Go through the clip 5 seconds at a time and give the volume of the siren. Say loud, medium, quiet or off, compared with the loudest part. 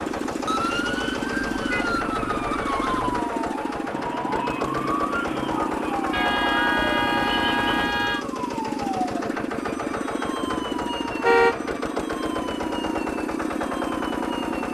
loud, loud, medium.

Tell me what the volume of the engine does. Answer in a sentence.
The loudness of the engine stays about the same.